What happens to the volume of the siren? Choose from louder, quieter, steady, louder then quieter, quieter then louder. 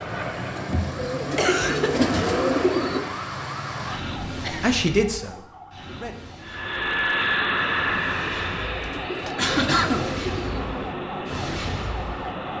quieter then louder.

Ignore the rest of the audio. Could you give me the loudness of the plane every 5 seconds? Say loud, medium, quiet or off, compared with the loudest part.
medium, loud, medium.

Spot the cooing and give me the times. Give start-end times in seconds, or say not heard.
0.9-3.0, 8.6-10.6.